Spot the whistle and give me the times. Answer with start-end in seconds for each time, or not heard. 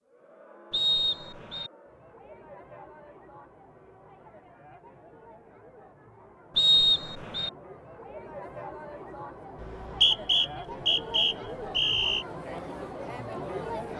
0.7-1.7, 6.5-7.5, 9.6-12.2.